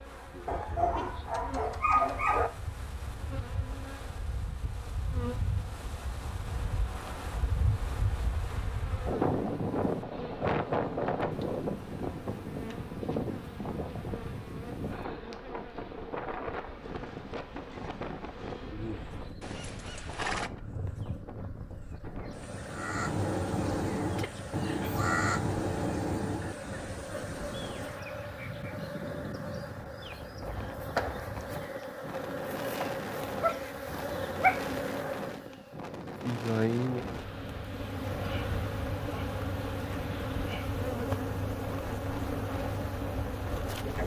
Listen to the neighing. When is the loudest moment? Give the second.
20 s.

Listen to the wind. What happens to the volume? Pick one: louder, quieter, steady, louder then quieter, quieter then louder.
louder then quieter.